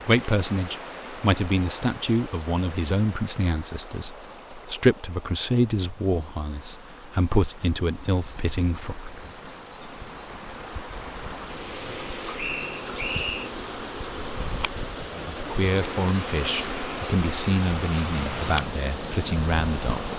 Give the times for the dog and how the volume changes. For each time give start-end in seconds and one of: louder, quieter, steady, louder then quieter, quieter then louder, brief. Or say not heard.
not heard.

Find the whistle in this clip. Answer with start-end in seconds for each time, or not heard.
12.3-13.5.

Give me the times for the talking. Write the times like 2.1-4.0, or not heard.
0.0-9.2, 15.1-20.1.